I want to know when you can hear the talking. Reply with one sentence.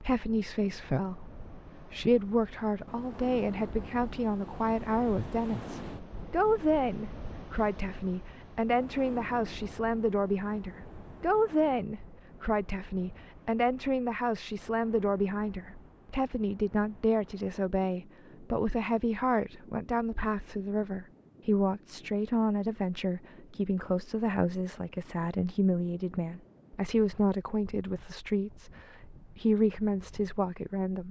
The talking can be heard from 0.0 to 31.0 s.